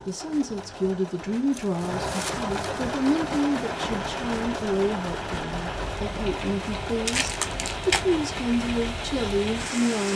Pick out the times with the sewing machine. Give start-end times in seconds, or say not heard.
0.0-10.1.